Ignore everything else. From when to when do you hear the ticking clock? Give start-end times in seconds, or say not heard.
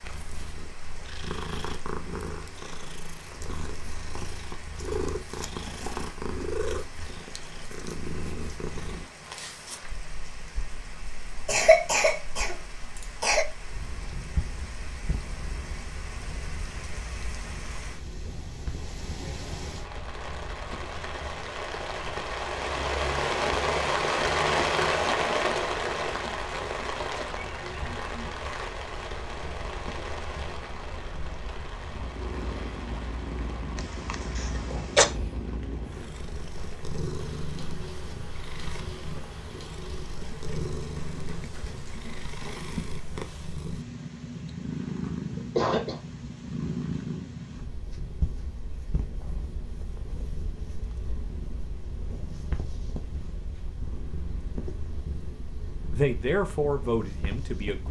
not heard.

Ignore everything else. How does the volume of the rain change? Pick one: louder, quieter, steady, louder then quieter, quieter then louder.
louder then quieter.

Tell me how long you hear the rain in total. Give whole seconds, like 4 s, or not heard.
42 s.